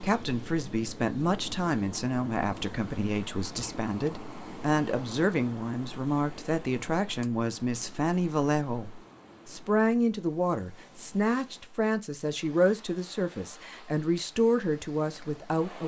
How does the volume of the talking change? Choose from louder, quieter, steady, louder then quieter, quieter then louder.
steady.